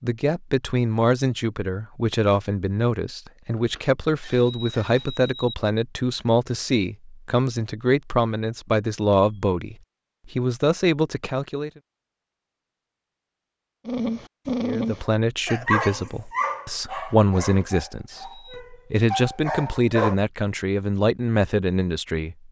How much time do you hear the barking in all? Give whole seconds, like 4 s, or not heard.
6 s.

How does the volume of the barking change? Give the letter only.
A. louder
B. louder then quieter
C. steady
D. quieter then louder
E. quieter
D.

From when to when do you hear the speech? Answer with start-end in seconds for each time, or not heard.
0.0-11.7, 14.6-22.4.